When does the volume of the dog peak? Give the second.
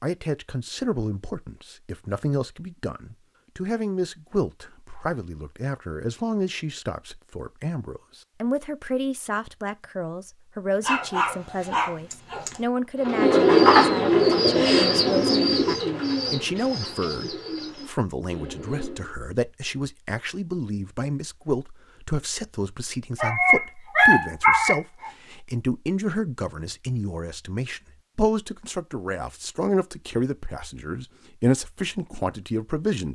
24 s.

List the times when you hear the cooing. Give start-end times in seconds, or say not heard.
13.0-19.1.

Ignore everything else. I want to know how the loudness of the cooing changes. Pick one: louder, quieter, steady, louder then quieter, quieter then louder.
quieter.